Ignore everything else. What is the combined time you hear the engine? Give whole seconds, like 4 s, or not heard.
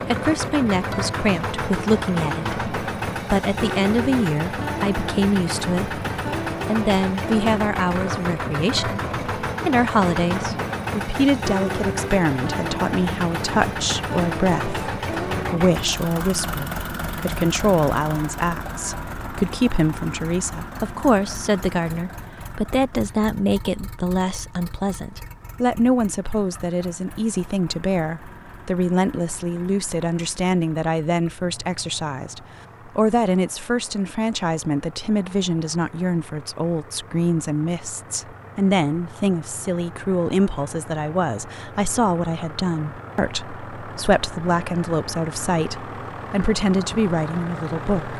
48 s.